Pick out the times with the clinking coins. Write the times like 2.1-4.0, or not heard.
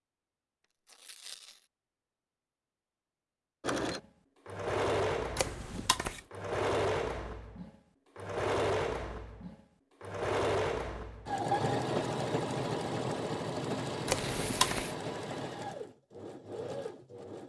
not heard.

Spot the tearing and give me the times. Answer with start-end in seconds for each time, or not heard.
0.8-1.6, 14.2-14.9.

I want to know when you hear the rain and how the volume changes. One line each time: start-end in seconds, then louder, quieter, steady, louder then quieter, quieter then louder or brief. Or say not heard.
not heard.